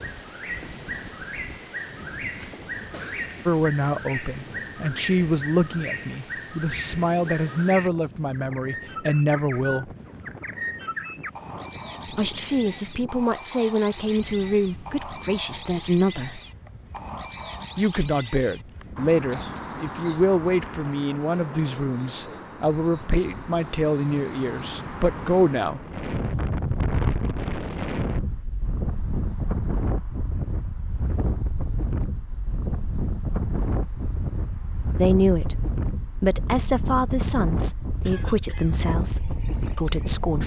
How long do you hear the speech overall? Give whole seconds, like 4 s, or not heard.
24 s.